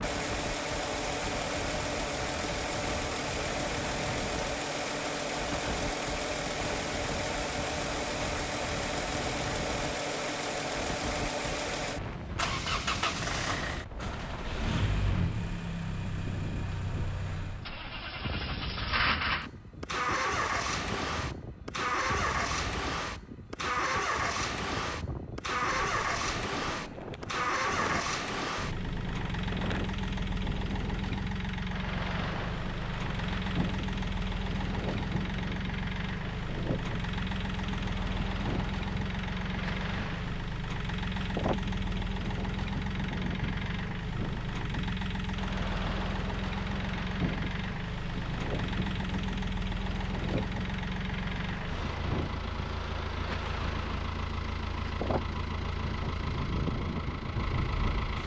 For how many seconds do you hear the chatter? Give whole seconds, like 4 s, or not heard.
not heard.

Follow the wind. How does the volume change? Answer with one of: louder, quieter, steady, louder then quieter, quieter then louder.
steady.